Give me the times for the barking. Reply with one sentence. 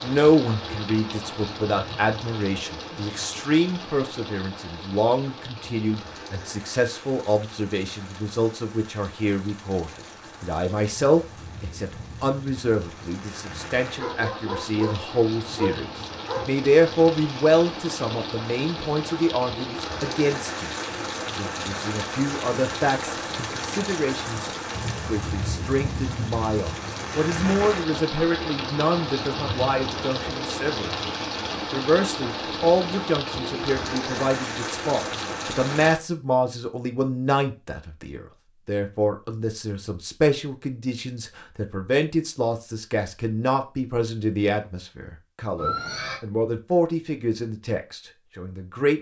The barking can be heard from 13.9 to 16.6 s.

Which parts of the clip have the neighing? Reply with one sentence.
You can hear the neighing from 45.5 to 46.2 s.